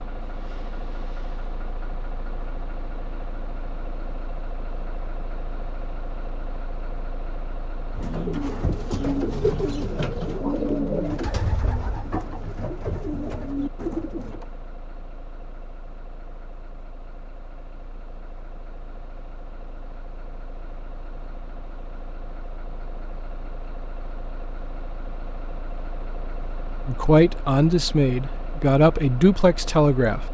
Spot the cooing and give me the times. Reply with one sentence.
You can hear the cooing from 8.0 to 14.5 s.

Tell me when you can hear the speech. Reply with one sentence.
You can hear the speech from 26.9 to 30.2 s.